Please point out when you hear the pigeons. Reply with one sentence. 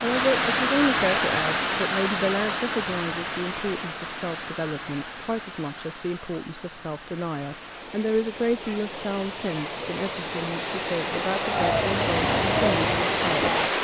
The pigeons can be heard from 11.4 to 13.7 s.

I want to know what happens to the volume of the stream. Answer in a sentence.
The volume of the stream goes down, then up.